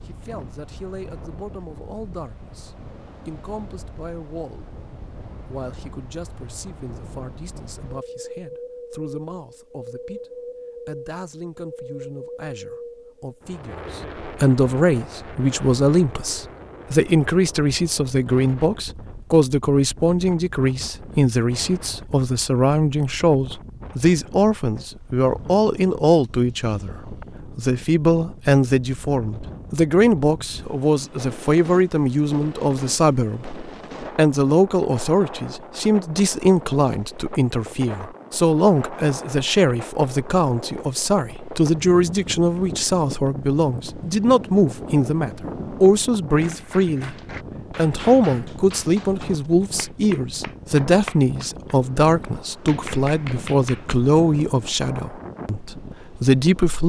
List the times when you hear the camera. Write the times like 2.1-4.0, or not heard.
not heard.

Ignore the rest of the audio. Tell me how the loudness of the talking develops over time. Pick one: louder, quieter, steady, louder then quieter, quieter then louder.
louder.